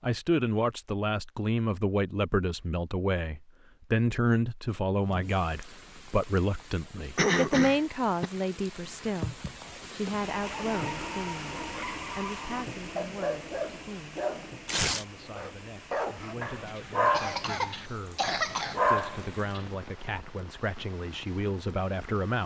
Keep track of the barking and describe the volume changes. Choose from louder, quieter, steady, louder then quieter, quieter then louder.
louder.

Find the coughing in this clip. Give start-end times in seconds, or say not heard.
7.2-8.3, 17.1-18.8.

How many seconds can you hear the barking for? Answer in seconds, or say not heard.
9 s.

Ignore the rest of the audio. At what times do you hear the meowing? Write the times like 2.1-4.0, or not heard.
not heard.